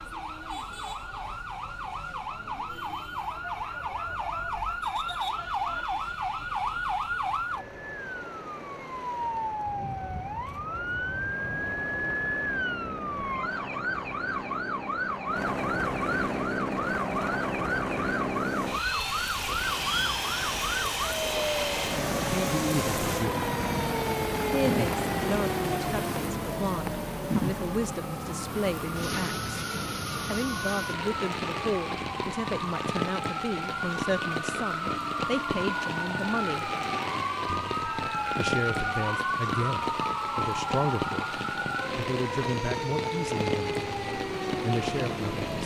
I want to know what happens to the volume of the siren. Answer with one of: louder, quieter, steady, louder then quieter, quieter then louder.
steady.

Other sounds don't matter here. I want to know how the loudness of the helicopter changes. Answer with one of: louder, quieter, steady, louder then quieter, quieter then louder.
louder.